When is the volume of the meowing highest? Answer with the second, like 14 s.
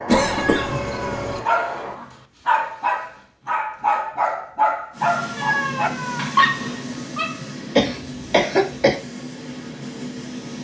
6 s.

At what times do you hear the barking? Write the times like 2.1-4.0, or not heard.
1.4-7.4.